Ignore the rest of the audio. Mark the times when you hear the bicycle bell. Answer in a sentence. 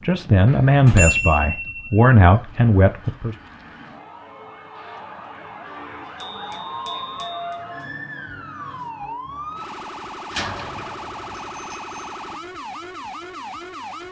The bicycle bell can be heard from 0.5 to 2.0 s, from 6.2 to 7.5 s and from 11.5 to 12.0 s.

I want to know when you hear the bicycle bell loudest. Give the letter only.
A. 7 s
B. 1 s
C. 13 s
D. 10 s
B.